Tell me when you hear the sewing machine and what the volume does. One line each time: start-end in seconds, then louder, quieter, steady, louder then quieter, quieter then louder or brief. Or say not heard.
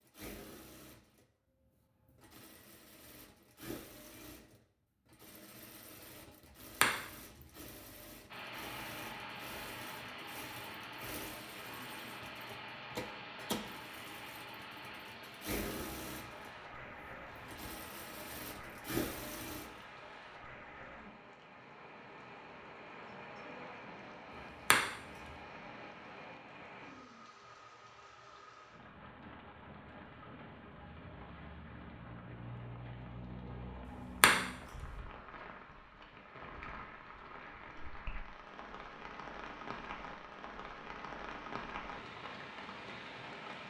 0.0-19.9 louder.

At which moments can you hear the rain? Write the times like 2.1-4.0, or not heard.
8.3-43.6.